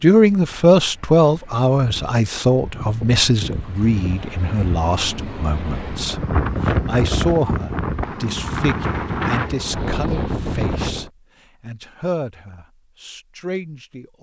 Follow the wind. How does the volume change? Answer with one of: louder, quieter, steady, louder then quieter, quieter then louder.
louder.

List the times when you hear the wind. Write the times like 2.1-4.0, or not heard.
0.1-11.1.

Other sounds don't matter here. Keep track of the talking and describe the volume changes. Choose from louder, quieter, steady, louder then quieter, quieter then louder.
quieter.